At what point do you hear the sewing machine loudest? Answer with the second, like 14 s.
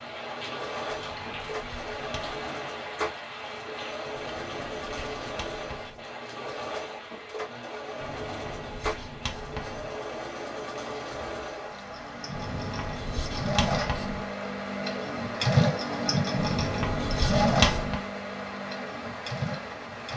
16 s.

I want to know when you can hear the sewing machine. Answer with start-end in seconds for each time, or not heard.
0.0-20.1.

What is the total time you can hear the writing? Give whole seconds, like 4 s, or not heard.
9 s.